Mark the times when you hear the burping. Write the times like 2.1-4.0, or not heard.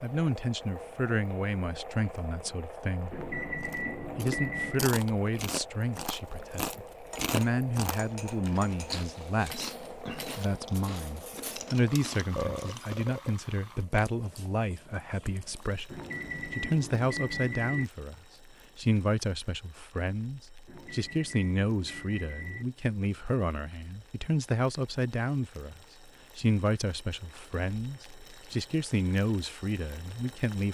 12.3-13.3.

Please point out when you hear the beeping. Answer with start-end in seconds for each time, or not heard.
3.1-4.8, 15.9-17.9, 20.6-22.6.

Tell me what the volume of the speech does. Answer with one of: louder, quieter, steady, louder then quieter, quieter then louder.
steady.